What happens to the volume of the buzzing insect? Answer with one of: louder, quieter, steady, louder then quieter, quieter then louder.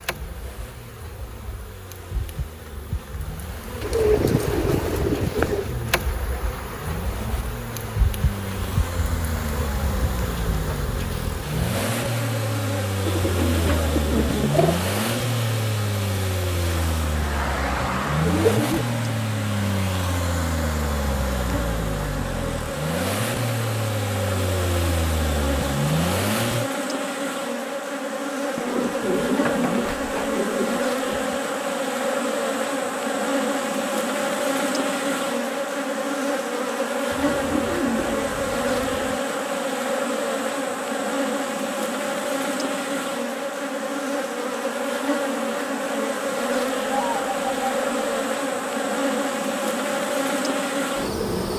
louder.